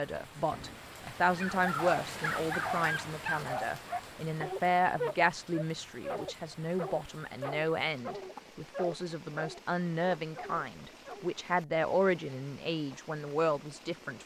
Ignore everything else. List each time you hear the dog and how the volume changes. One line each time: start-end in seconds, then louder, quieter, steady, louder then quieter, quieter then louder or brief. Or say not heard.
1.2-11.3 quieter.